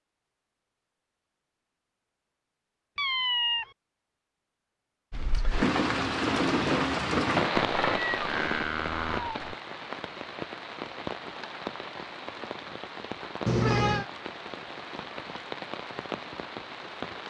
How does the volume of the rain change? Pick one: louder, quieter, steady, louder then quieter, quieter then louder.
quieter.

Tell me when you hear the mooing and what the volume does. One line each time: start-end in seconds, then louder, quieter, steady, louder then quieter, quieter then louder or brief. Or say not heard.
not heard.